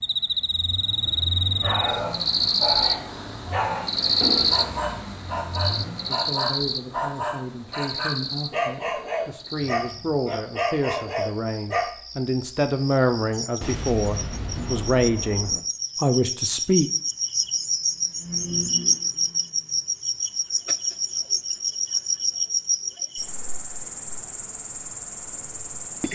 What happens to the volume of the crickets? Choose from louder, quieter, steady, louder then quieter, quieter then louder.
quieter then louder.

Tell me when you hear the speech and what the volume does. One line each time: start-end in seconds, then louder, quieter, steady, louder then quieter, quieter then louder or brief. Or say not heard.
6.0-16.9 louder.